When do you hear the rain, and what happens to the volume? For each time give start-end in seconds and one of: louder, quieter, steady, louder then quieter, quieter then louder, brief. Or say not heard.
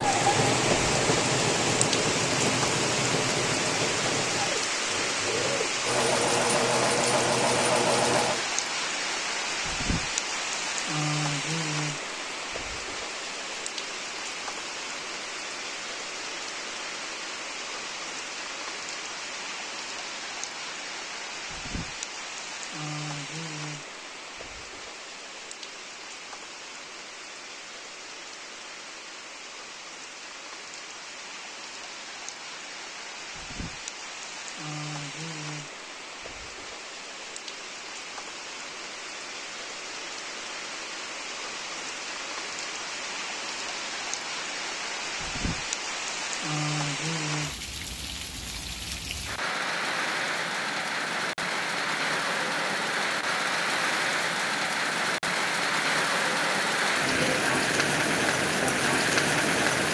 0.0-59.8 quieter then louder.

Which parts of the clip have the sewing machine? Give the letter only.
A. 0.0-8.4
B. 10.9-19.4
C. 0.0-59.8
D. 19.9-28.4
A.